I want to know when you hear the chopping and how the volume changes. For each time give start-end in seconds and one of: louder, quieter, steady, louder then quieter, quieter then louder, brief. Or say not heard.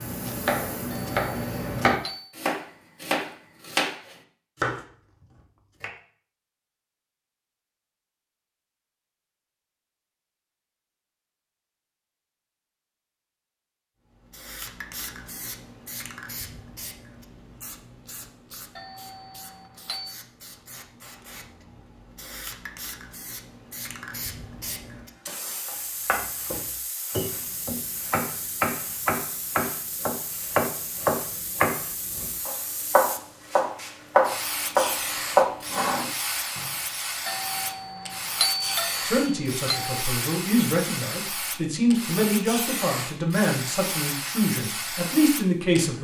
0.0-6.0 steady
25.6-36.7 louder.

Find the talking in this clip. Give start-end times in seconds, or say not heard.
39.0-45.9.